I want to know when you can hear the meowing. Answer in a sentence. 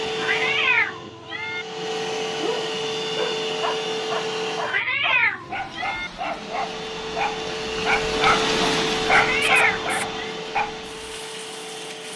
The meowing can be heard from 0.1 to 1.6 s, from 4.6 to 6.1 s and from 9.1 to 10.3 s.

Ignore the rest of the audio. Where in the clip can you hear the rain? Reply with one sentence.
The rain can be heard from 5.2 to 12.1 s.